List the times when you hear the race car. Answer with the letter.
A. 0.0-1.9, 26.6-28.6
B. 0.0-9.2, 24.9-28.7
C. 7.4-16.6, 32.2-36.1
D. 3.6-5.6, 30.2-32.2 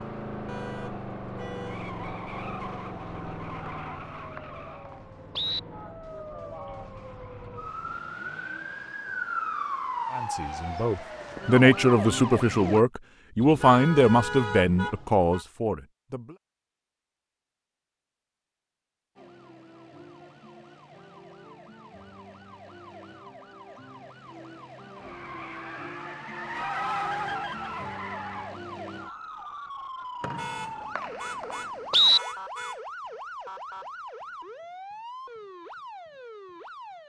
B.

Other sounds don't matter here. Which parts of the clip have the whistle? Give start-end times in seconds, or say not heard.
3.6-5.6, 30.2-32.2.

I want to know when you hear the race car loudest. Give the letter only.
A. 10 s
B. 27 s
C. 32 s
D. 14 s
B.